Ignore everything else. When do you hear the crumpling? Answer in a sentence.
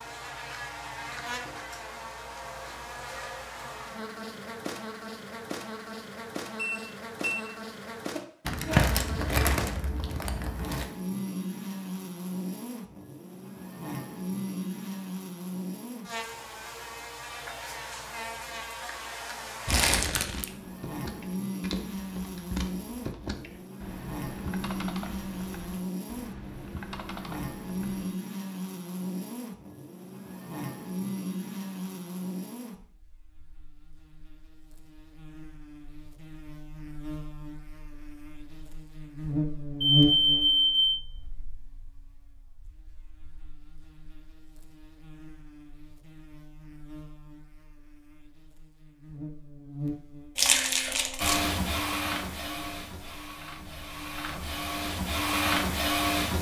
The crumpling can be heard from 8.4 to 10.9 s, from 19.6 to 20.5 s and from 50.4 to 51.4 s.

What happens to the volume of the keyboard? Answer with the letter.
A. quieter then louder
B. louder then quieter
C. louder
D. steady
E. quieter
D.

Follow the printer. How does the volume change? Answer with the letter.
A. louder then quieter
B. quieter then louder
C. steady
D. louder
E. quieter
B.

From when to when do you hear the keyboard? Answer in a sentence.
You can hear the keyboard from 20.1 to 28.1 s.